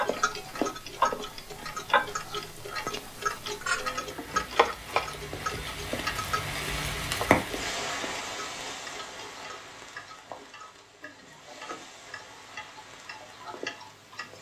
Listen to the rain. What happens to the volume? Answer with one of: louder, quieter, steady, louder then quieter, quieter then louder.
louder then quieter.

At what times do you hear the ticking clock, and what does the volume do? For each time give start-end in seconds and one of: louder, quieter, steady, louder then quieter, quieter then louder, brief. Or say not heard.
0.0-14.3 quieter.